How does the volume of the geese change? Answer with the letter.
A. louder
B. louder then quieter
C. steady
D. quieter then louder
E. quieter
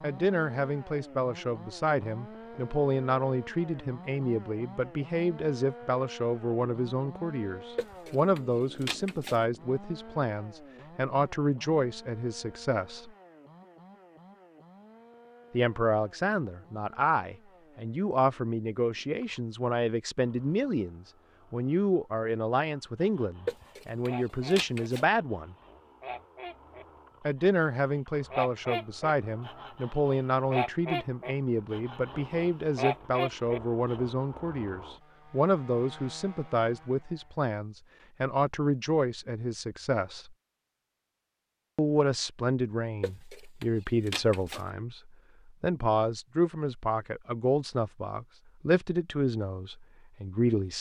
A.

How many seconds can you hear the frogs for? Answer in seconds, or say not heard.
not heard.